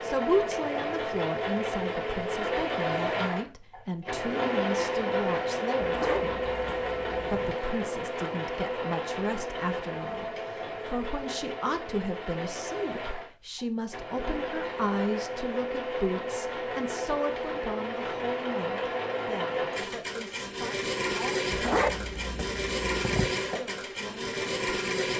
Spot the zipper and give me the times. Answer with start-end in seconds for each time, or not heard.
5.8-7.5, 21.5-23.4.